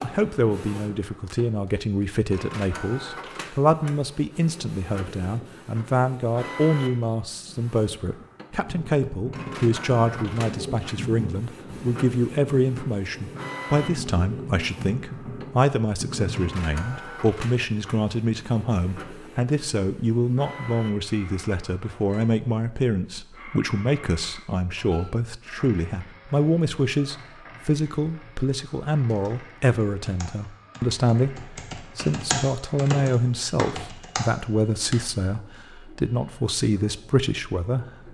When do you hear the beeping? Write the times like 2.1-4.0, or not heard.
not heard.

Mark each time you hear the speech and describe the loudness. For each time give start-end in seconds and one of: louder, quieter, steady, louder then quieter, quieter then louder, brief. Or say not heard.
0.0-38.1 steady.